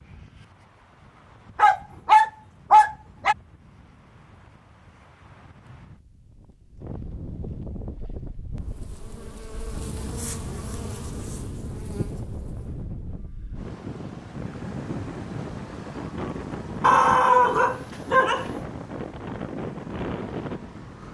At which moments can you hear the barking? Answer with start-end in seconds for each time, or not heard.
1.6-3.4, 16.8-18.6.